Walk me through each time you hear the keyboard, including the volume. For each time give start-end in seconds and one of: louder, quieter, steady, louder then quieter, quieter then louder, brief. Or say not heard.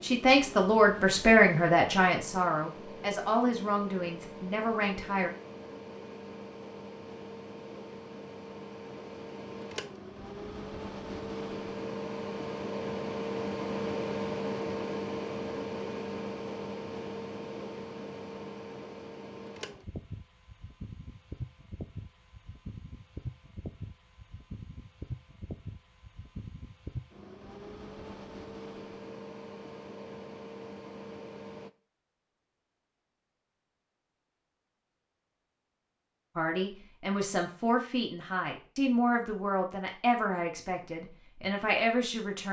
not heard.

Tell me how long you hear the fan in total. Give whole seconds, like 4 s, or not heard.
32 s.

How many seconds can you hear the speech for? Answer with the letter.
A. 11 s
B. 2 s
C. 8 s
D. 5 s
A.